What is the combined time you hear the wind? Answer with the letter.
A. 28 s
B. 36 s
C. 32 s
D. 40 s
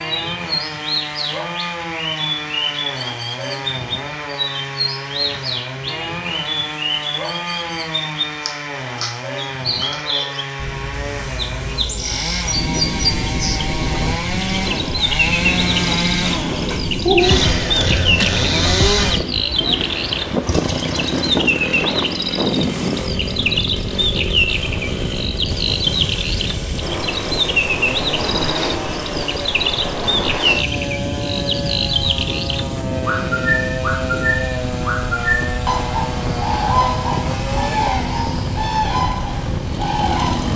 A.